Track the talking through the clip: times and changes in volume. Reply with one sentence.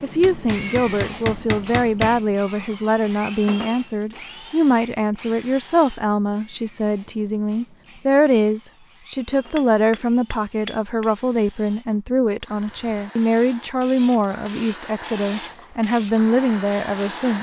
You can hear the talking from 0.0 to 17.3 s, at a steady volume.